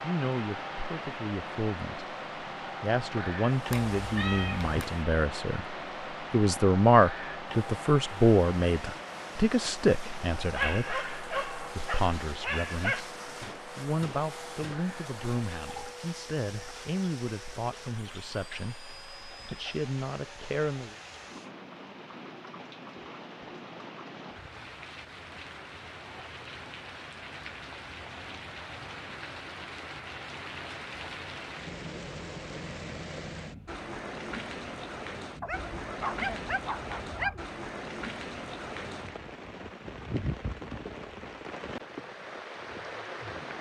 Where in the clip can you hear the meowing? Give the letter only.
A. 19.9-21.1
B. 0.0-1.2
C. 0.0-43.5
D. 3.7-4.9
D.